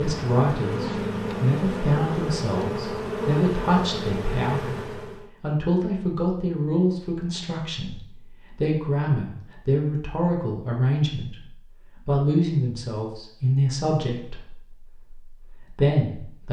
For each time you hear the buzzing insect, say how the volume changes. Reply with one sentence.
You can hear the buzzing insect from 0.0 to 5.3 s, at a steady volume.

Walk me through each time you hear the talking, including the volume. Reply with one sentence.
You can hear the talking from 0.0 to 16.4 s, at a steady volume.